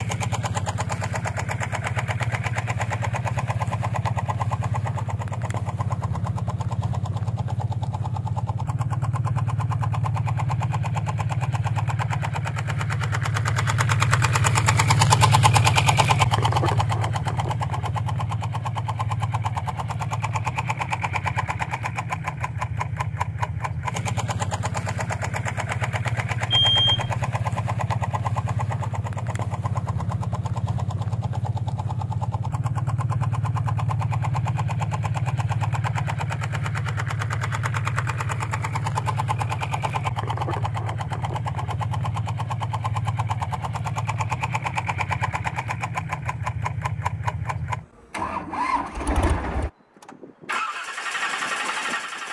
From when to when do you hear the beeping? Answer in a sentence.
You can hear the beeping from 26.5 to 27.1 s.